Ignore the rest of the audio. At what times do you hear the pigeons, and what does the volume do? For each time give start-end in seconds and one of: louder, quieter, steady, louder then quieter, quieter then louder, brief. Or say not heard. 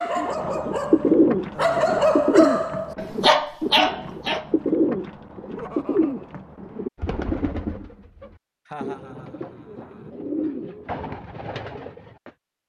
0.1-12.3 quieter.